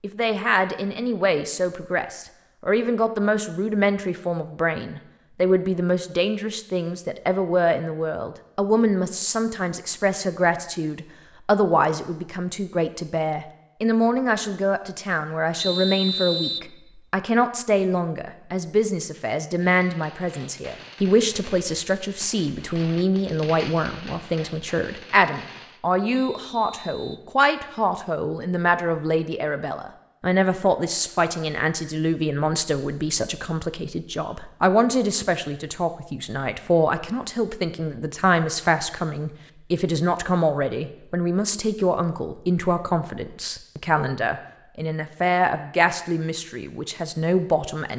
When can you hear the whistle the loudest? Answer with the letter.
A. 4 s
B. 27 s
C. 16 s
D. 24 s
C.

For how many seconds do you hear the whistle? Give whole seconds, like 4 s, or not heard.
2 s.